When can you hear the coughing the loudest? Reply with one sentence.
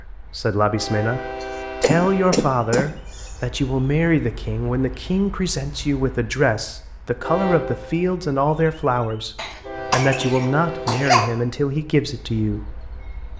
The volume of the coughing peaks at 11 seconds.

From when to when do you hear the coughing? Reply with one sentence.
You can hear the coughing from 1.4 to 3.4 s and from 9.3 to 11.3 s.